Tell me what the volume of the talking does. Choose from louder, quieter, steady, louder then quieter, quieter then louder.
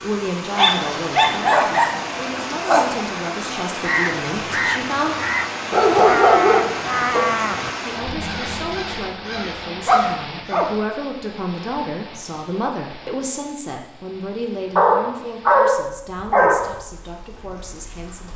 quieter.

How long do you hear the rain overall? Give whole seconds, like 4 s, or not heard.
18 s.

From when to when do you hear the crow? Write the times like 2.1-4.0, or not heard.
3.7-10.7.